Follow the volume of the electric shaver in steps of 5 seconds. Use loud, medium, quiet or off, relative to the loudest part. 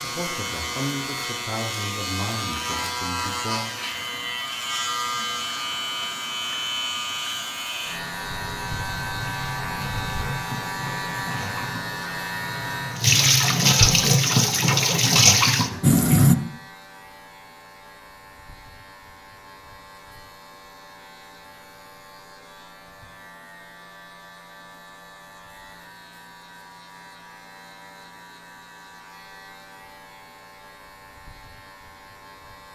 loud, loud, loud, quiet, quiet, quiet, quiet.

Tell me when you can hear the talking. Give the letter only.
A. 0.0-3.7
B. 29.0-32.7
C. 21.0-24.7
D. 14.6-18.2
A.